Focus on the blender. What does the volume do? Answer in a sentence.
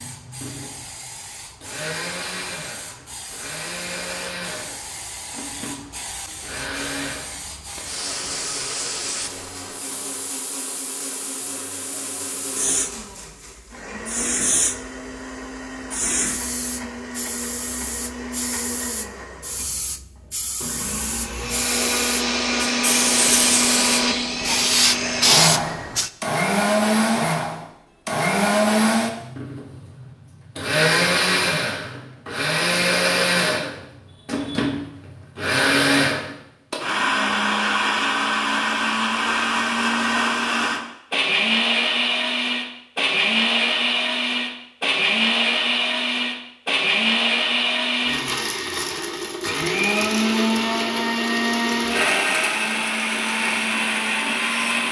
The loudness of the blender goes up.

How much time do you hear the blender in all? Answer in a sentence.
You can hear the blender for 55 seconds altogether.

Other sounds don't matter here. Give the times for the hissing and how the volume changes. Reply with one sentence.
The hissing can be heard from 0.0 to 26.1 s, getting louder.